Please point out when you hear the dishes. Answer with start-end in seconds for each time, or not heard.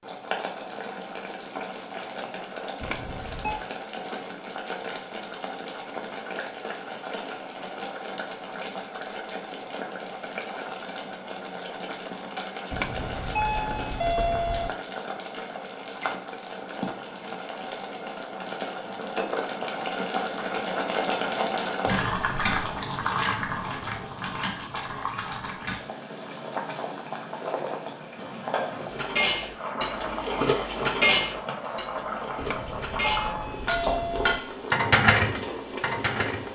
28.9-36.5.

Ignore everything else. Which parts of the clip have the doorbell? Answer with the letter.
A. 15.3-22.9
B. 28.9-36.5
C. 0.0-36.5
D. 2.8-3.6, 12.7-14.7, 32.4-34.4
D.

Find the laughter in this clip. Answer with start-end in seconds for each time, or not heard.
not heard.